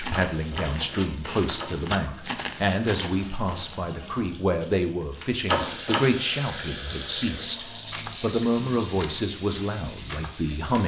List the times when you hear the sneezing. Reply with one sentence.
You can't hear the sneezing here.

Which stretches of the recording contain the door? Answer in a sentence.
The door can be heard from 0.3 to 1.8 s and from 5.5 to 6.0 s.